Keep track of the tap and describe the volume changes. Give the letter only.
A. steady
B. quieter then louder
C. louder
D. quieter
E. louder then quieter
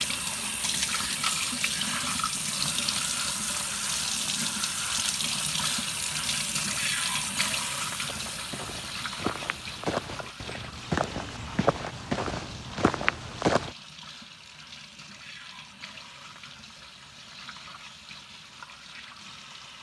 D.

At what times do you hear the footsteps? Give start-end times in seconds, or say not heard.
8.1-13.8.